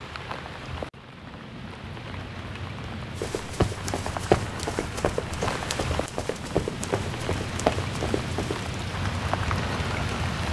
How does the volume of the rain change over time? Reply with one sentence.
The volume of the rain goes up.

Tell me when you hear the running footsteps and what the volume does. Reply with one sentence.
The running footsteps can be heard from 3.1 to 8.7 s, getting quieter then louder.